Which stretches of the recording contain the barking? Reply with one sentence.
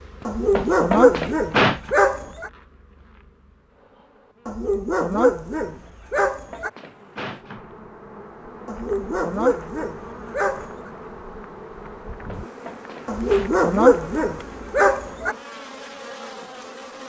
You can hear the barking from 0.2 to 2.5 s, from 4.5 to 6.7 s, from 8.7 to 10.9 s and from 13.1 to 15.3 s.